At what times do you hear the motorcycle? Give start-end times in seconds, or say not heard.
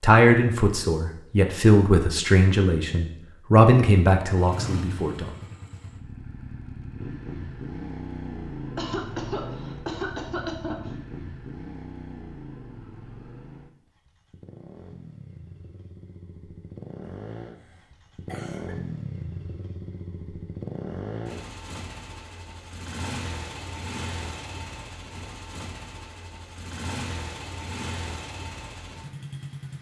4.3-29.7.